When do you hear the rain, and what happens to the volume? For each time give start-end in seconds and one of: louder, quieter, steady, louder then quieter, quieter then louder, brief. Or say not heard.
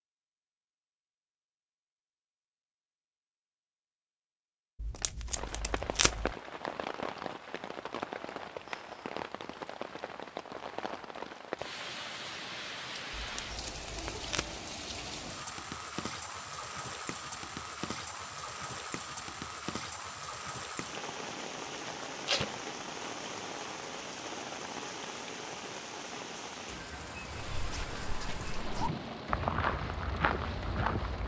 5.2-31.2 steady.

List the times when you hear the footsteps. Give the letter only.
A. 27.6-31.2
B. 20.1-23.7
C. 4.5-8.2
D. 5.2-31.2
A.